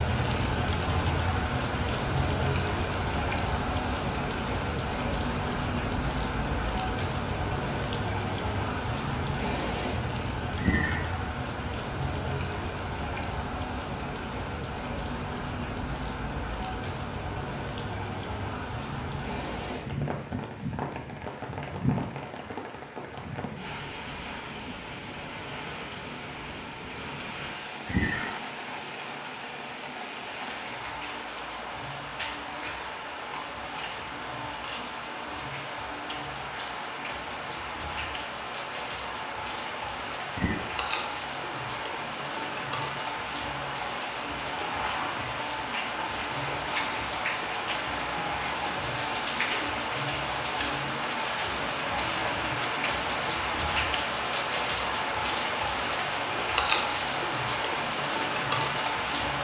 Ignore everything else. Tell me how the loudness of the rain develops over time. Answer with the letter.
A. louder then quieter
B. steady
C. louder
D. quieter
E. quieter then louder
E.